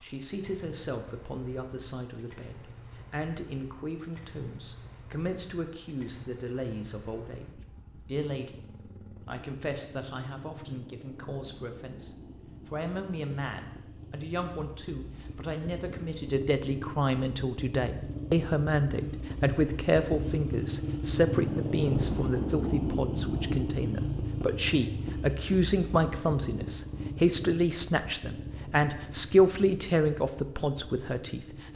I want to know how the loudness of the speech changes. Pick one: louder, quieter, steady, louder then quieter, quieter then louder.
louder.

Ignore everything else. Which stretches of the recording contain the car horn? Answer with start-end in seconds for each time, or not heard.
not heard.